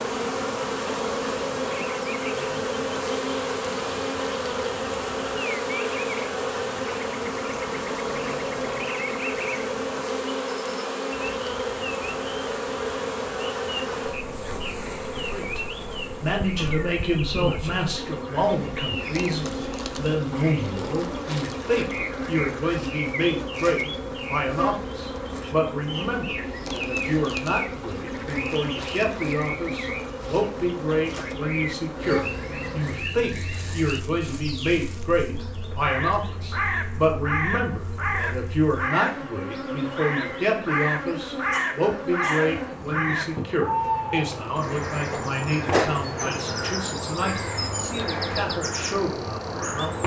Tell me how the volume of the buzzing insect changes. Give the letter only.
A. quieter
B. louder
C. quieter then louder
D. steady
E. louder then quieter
A.